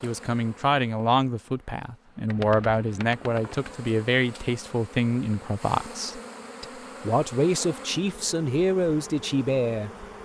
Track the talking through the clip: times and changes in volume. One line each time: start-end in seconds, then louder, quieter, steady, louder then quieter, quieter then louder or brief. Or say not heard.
0.0-10.2 steady.